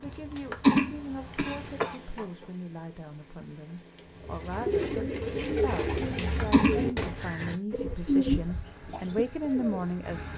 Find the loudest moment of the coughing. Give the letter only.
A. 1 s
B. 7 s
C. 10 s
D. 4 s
A.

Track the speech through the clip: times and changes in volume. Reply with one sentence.
The speech can be heard from 0.0 to 10.3 s, getting louder.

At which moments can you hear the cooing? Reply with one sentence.
The cooing can be heard from 4.2 to 9.9 s.